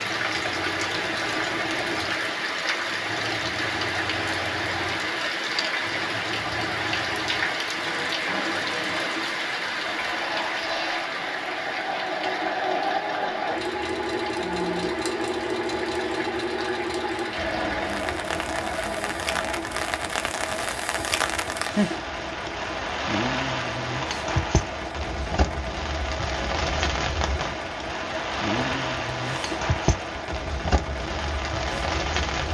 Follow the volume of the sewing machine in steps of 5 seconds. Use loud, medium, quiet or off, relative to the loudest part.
medium, medium, loud, loud, medium, medium, medium.